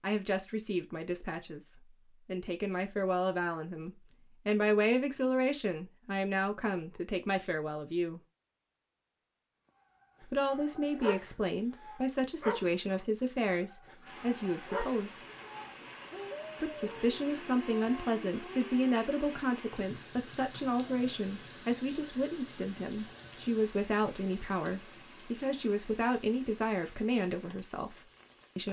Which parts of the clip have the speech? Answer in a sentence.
The speech can be heard from 0.0 to 8.2 s, from 10.2 to 15.2 s and from 16.6 to 28.6 s.